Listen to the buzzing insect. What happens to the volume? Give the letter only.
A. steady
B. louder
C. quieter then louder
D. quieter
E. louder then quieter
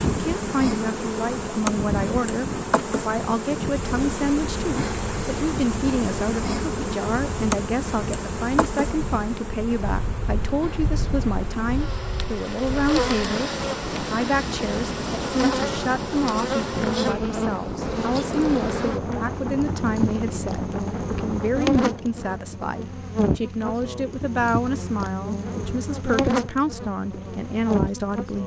A.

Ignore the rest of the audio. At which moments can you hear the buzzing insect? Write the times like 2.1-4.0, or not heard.
0.0-28.4.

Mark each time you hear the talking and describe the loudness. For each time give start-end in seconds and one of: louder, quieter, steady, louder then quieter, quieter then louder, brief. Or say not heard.
0.1-28.4 steady.